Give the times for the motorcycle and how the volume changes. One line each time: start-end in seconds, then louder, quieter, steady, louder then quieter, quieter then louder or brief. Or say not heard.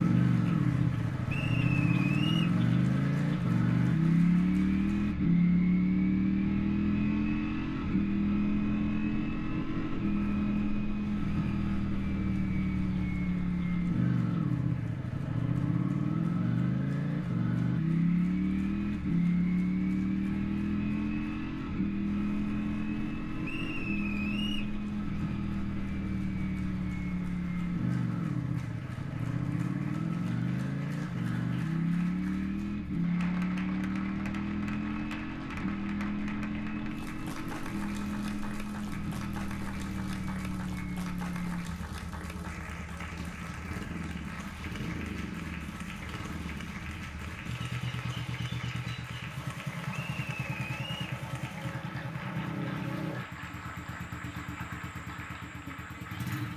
0.0-56.5 quieter.